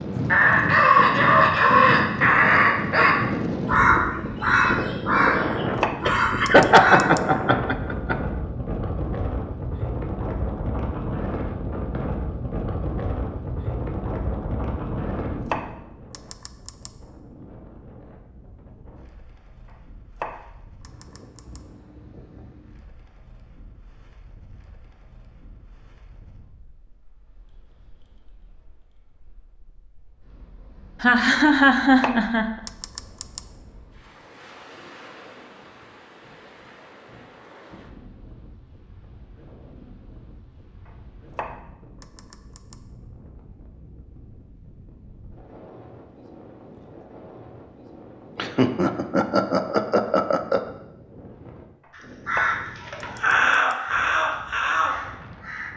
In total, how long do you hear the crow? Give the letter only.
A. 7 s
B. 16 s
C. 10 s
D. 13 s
C.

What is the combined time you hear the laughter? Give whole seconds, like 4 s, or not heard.
6 s.